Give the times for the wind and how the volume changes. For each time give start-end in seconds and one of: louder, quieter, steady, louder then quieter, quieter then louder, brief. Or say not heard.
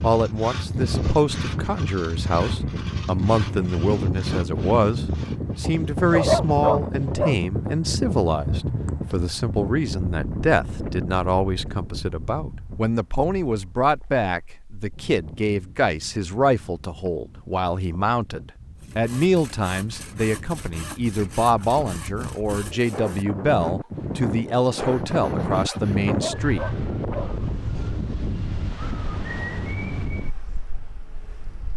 0.0-31.7 quieter then louder.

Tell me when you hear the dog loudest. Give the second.
6 s.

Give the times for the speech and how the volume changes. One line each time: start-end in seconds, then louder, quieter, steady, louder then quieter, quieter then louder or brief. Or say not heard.
0.0-26.6 steady.